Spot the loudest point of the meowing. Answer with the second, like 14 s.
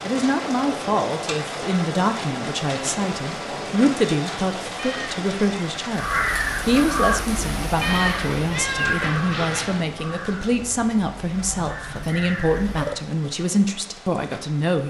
9 s.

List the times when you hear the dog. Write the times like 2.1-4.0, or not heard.
not heard.